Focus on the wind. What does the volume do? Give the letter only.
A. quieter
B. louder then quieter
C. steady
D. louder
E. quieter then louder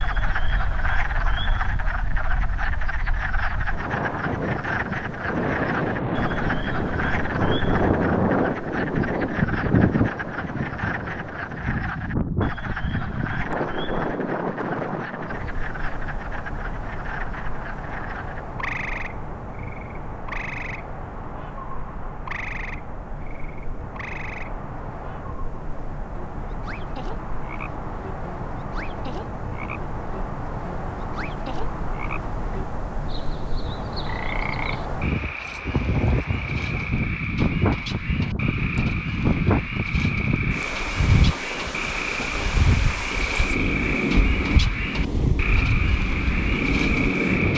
E.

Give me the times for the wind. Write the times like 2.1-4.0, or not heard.
0.0-47.5.